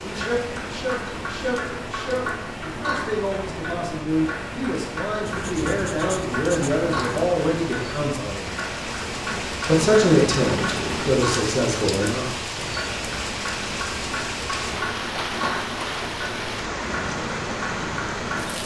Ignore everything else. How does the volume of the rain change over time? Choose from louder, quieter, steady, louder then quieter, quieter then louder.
louder.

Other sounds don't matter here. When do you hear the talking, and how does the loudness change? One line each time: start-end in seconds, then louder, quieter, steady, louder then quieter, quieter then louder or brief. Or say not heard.
0.0-8.6 louder
9.7-12.2 brief.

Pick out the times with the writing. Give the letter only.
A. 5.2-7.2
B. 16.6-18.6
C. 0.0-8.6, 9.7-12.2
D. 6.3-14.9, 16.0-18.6
A.